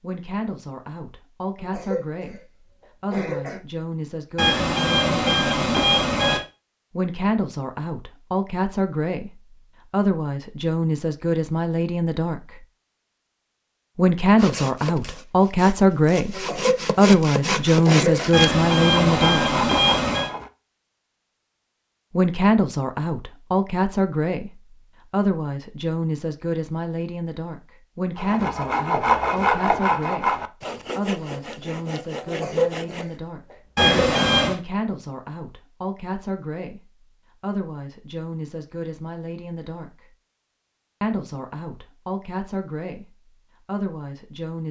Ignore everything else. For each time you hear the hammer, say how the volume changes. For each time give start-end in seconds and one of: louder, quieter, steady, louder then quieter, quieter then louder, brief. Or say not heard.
not heard.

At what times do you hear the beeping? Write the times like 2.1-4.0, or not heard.
4.3-6.4, 18.3-20.3, 33.8-34.5.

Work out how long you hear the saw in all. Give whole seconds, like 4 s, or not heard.
11 s.